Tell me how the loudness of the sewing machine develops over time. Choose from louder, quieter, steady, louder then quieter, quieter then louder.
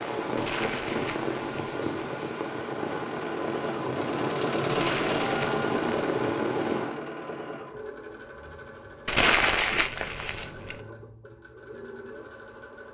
louder then quieter.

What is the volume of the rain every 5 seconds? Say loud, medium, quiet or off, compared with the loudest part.
loud, loud, off.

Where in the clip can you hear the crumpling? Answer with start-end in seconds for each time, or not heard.
0.3-1.9, 4.7-6.0, 9.1-10.8.